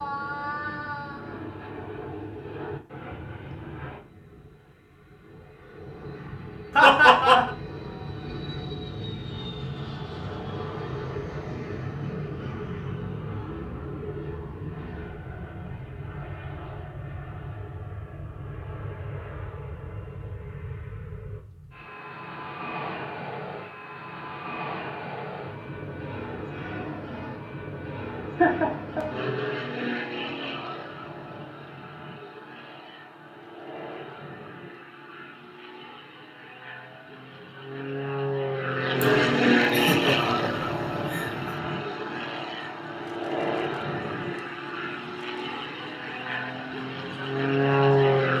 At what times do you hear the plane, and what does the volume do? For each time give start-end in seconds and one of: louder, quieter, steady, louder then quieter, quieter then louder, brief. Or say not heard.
0.0-48.3 louder.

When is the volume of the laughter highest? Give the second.
7 s.